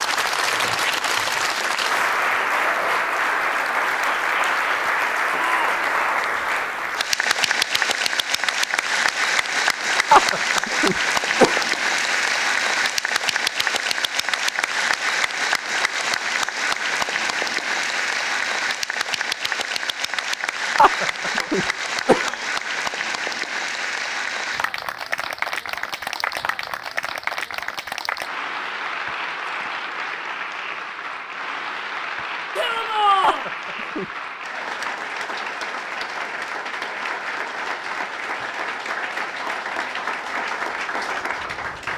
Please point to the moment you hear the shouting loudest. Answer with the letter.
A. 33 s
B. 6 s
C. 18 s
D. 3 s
A.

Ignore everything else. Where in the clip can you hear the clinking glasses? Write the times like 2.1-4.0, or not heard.
not heard.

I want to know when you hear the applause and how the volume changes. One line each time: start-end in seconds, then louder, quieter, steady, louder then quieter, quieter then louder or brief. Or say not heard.
0.0-41.9 quieter.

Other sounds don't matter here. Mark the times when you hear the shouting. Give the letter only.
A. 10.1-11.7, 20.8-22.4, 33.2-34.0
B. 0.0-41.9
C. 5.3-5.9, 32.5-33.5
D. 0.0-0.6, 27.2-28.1
C.